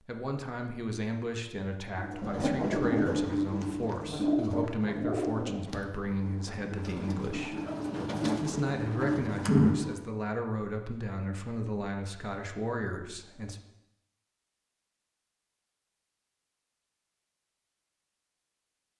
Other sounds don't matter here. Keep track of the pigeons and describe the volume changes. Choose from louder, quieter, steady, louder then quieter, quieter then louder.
quieter then louder.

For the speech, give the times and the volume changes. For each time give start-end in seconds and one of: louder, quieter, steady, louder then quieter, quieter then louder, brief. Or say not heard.
0.1-7.6 steady
8.4-13.6 steady.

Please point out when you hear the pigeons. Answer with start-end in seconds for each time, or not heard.
1.9-9.9.